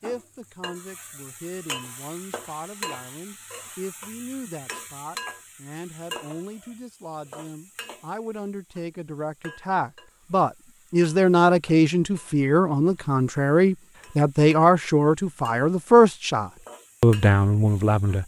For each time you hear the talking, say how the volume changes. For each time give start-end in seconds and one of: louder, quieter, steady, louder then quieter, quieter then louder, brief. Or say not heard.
0.0-18.2 louder.